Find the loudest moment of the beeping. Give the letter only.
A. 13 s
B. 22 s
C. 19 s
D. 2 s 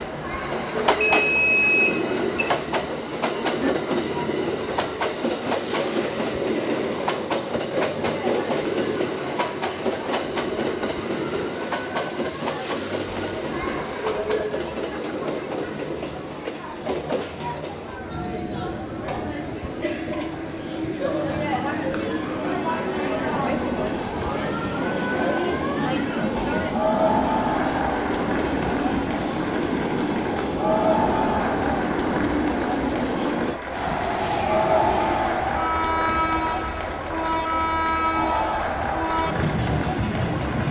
D.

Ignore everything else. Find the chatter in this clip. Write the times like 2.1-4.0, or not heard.
0.0-40.6.